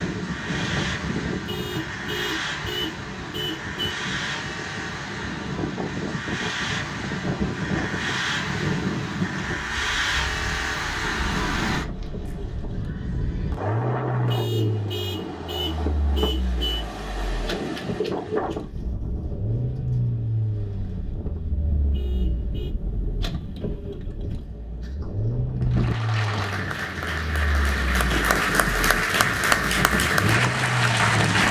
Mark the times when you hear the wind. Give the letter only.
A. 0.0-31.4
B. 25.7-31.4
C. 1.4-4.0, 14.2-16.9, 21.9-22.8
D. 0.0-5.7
A.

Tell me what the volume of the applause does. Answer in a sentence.
The loudness of the applause goes up.